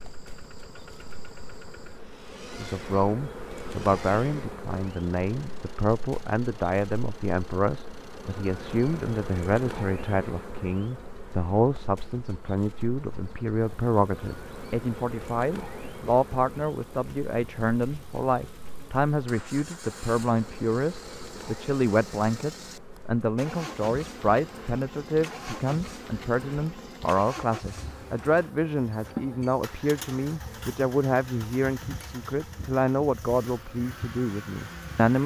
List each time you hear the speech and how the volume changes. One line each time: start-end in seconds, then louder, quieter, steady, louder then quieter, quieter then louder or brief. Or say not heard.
2.5-35.2 steady.